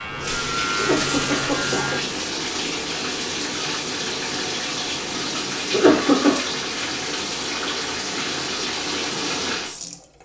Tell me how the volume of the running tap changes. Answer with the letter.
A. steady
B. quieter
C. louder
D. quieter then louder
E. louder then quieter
A.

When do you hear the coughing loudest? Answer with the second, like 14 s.
6 s.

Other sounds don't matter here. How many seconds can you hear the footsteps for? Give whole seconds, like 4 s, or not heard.
not heard.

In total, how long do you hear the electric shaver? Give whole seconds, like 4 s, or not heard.
2 s.